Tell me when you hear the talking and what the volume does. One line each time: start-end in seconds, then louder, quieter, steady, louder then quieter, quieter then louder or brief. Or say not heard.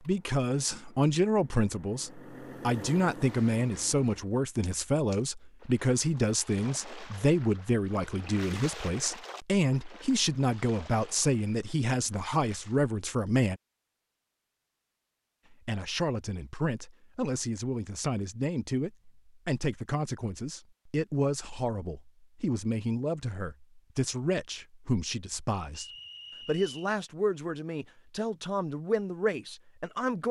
0.1-13.6 steady
15.5-30.2 steady.